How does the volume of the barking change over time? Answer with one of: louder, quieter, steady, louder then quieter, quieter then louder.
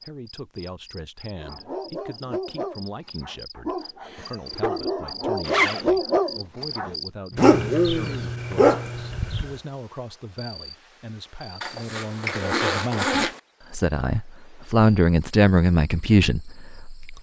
louder.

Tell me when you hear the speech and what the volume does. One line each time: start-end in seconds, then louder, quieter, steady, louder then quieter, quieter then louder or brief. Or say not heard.
0.0-17.1 louder.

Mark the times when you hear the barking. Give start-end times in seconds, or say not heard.
1.4-9.6.